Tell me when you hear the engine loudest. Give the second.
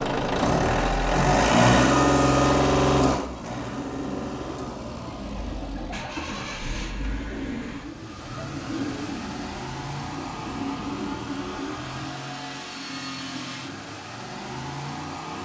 2 s.